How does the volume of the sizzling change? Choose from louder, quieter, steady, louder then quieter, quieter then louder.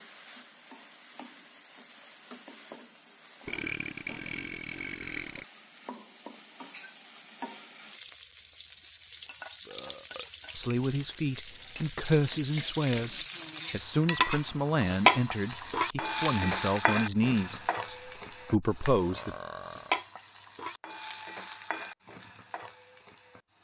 louder then quieter.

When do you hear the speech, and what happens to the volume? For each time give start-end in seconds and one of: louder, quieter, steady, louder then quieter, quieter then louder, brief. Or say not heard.
10.6-19.4 steady.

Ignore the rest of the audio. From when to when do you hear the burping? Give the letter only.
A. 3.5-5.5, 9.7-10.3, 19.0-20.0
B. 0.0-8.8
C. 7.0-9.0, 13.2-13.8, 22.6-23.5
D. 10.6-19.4
A.